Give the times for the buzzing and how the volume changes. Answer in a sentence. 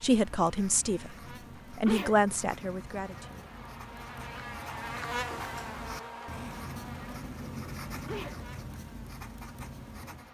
The buzzing can be heard from 0.0 to 10.3 s, getting louder then quieter.